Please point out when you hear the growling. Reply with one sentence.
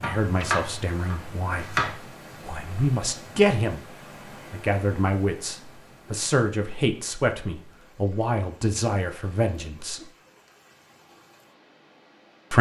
You can't hear the growling here.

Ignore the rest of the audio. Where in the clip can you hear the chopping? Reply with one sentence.
The chopping can be heard from 0.0 to 1.9 s.